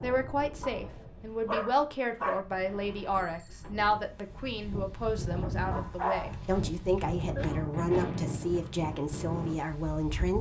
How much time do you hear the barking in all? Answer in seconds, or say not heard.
4 s.